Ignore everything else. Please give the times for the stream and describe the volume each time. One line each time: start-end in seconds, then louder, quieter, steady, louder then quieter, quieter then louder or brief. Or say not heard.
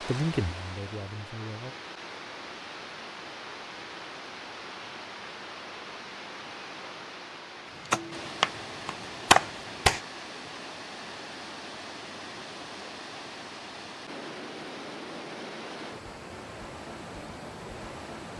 0.0-18.3 steady.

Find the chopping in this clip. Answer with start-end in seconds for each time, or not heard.
7.8-10.0.